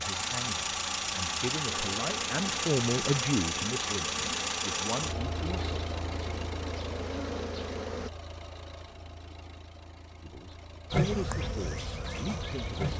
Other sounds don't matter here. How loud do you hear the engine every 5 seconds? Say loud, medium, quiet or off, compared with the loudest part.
loud, medium, quiet.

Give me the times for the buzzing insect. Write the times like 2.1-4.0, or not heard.
1.6-8.1, 10.9-12.9.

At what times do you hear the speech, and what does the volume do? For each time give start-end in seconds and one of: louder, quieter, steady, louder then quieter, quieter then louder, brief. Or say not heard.
0.0-5.8 louder then quieter
10.2-12.9 brief.